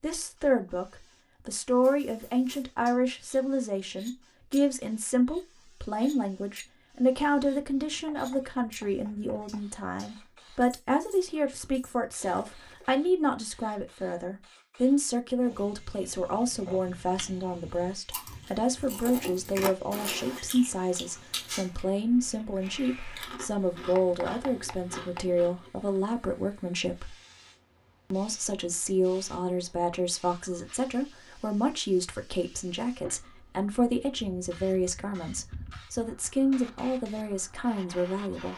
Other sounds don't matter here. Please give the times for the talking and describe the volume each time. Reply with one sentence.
You can hear the talking from 0.0 to 27.1 s, at a steady volume; and from 28.1 to 38.5 s, at a steady volume.